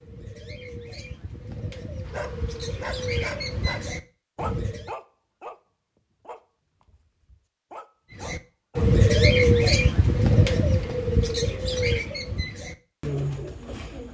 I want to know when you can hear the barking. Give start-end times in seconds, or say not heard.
2.0-5.6, 6.2-8.9.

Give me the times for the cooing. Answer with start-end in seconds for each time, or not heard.
0.0-4.9, 8.2-14.0.